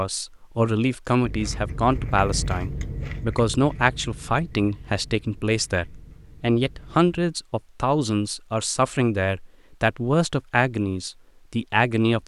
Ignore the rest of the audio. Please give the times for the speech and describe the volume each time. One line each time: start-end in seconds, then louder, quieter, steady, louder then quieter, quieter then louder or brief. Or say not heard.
0.0-12.2 steady.